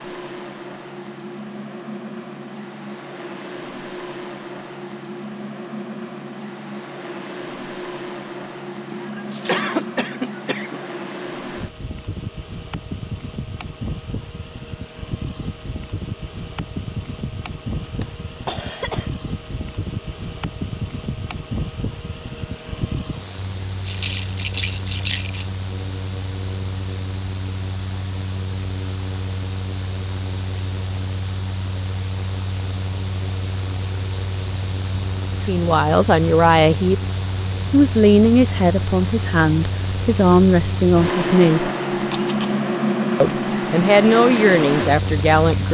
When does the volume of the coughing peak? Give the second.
10 s.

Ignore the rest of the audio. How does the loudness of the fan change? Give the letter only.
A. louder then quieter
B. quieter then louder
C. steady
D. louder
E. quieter
D.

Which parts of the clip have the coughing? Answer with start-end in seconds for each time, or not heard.
8.9-10.8, 17.9-19.1, 41.9-42.6.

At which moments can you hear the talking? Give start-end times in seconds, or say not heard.
35.5-37.0, 37.7-41.7, 43.2-45.6.